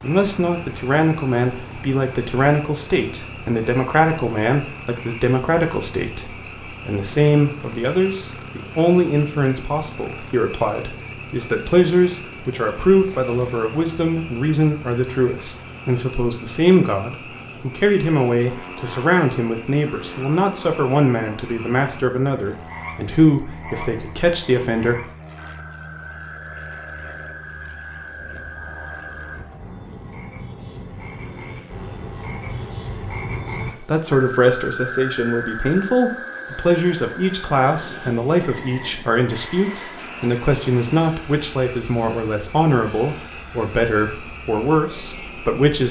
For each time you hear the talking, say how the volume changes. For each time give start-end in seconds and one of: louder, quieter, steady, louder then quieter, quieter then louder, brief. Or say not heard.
0.0-25.1 steady
33.5-45.8 steady.